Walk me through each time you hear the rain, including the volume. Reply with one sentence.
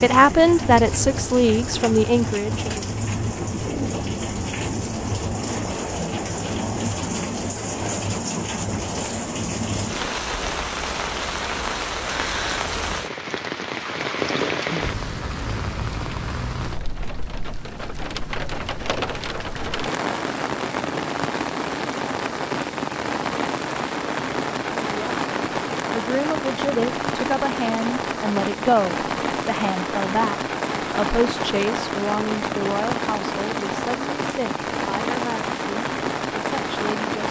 You can hear the rain from 0.0 to 37.2 s, at a steady volume.